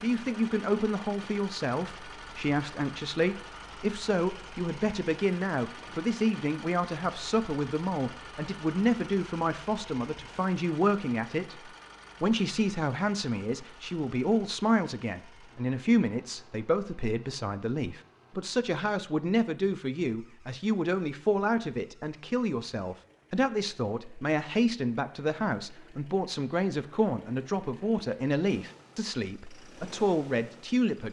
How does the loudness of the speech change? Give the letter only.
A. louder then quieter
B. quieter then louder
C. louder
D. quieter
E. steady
E.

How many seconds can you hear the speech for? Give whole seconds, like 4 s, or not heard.
31 s.